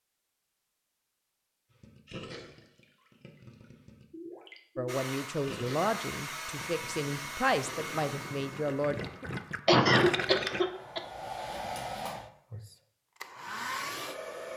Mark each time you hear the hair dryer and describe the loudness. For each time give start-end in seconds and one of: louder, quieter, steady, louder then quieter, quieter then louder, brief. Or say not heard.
4.8-14.5 quieter then louder.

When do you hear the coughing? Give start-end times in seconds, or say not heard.
9.7-11.0.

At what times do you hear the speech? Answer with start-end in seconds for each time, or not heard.
4.8-9.0.